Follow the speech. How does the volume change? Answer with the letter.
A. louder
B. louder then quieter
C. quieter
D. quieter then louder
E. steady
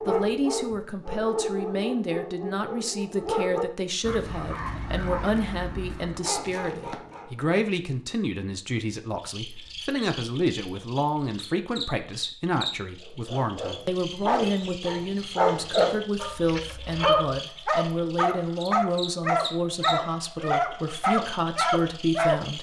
E.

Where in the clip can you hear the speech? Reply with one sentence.
You can hear the speech from 0.1 to 22.5 s.